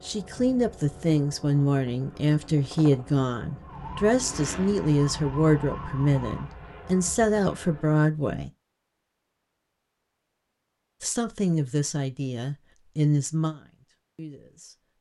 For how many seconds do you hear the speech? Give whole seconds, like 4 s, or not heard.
12 s.